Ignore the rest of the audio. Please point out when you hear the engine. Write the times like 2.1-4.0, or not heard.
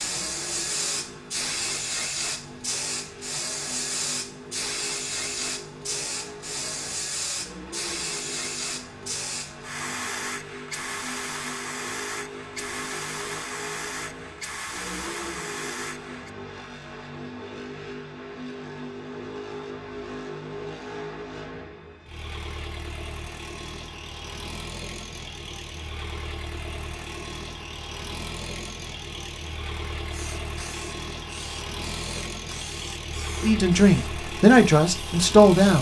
0.0-35.7.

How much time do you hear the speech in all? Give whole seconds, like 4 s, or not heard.
2 s.